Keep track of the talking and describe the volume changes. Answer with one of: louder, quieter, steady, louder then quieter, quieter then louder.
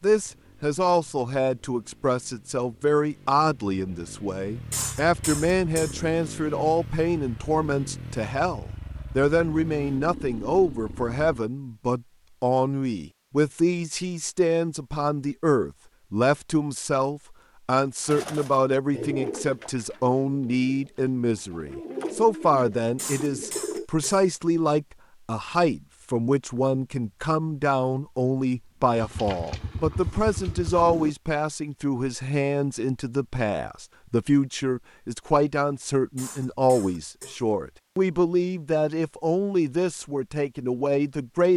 steady.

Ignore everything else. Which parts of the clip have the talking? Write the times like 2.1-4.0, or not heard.
0.0-41.5.